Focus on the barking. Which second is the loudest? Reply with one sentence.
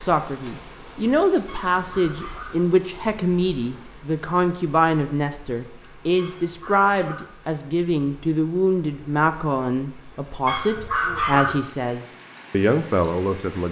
The volume of the barking peaks at 11 seconds.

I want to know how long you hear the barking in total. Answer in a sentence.
The barking can be heard for 3 seconds in total.